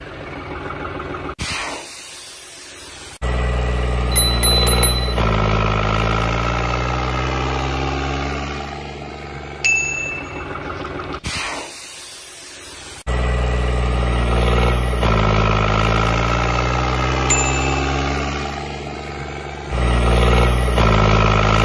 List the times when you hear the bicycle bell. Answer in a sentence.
You can hear the bicycle bell from 4.1 to 5.0 s, from 9.6 to 10.4 s and from 17.2 to 17.9 s.